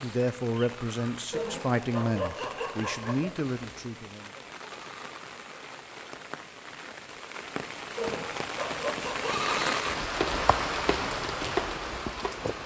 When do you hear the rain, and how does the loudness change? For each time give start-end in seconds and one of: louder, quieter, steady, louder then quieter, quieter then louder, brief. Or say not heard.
0.0-12.6 louder.